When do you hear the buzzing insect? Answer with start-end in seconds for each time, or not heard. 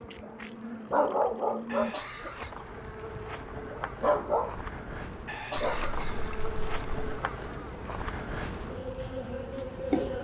0.0-10.1.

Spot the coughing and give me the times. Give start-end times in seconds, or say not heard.
1.6-2.5, 5.2-6.7.